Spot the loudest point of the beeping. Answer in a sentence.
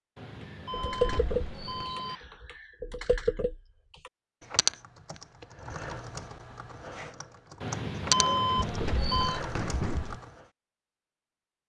The loudest moment of the beeping is at 8 seconds.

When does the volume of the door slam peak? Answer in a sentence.
The volume of the door slam peaks at 10 seconds.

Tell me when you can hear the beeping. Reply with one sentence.
You can hear the beeping from 0.1 to 2.2 s and from 7.6 to 9.4 s.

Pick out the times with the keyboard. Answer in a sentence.
The keyboard can be heard from 0.7 to 10.2 s.